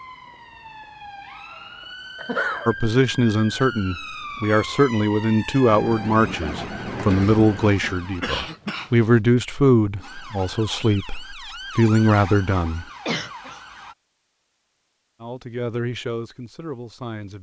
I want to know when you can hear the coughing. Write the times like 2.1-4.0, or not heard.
2.1-2.8, 7.0-9.2, 13.1-13.6.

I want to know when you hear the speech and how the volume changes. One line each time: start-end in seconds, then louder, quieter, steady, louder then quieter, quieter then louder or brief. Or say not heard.
2.6-12.8 steady
15.2-17.3 brief.